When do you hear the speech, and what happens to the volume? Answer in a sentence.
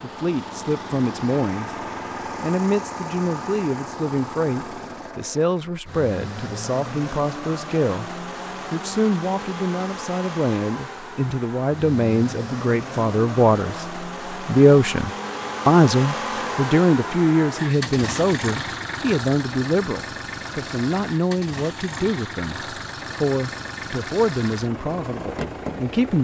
The speech can be heard briefly from 0.0 to 1.8 s; and from 2.4 to 26.1 s, getting louder then quieter.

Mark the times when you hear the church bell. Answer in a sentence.
The church bell can't be heard in this clip.